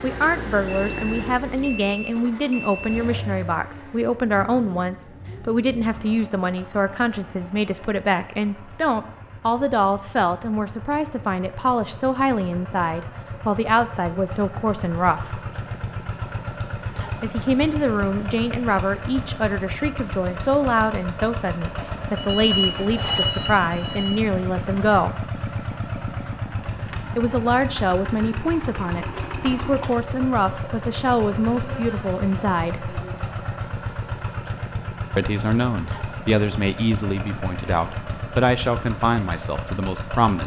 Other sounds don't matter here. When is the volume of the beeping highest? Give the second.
23 s.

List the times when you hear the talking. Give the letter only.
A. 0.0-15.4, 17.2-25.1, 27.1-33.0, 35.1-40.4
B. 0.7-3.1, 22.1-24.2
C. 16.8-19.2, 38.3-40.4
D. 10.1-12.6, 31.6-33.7
A.